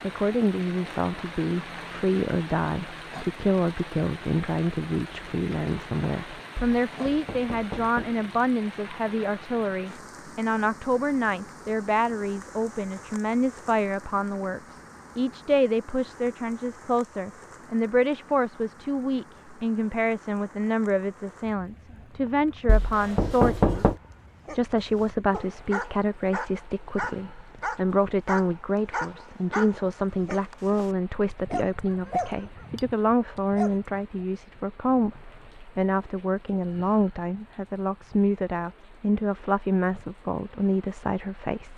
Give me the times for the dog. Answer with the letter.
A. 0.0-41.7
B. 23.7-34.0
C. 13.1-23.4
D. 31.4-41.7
B.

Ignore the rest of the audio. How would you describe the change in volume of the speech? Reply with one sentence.
The volume of the speech stays about the same.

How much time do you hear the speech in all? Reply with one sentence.
You can hear the speech for 42 seconds altogether.